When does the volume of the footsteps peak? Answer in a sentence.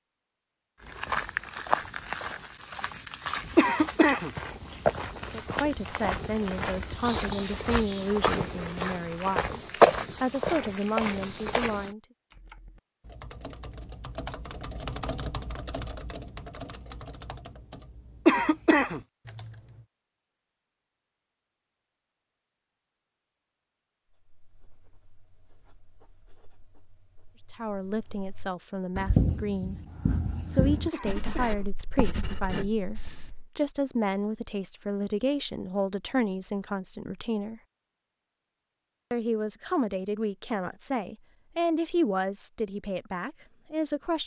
The volume of the footsteps peaks at 10 seconds.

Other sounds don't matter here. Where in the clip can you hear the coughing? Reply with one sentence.
The coughing can be heard from 3.5 to 4.3 s, from 18.2 to 19.0 s and from 30.9 to 31.6 s.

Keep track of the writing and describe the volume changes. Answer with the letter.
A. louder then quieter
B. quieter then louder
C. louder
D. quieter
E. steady
A.